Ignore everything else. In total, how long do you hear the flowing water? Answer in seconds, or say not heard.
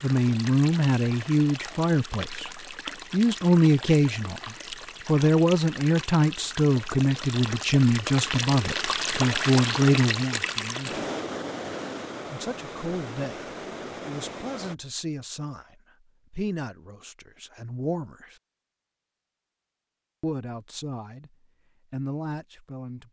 15 s.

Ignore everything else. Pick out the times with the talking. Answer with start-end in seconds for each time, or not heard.
0.0-2.5, 3.1-11.1, 12.3-18.4, 20.2-23.0.